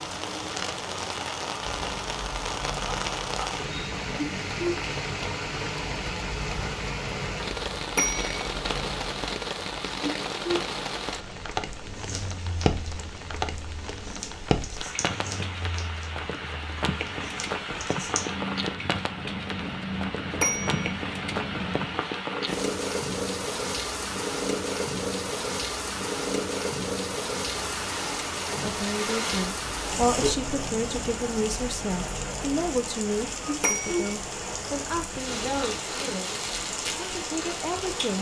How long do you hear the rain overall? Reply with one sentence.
The rain can be heard for 38 seconds in total.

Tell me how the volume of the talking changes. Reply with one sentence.
The loudness of the talking goes down.